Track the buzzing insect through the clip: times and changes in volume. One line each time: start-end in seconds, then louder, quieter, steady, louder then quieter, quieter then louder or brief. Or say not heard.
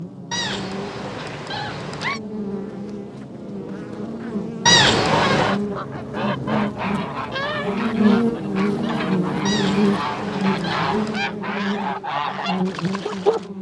0.0-13.5 louder then quieter.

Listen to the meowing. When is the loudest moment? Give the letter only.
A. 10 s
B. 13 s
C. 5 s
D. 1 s
C.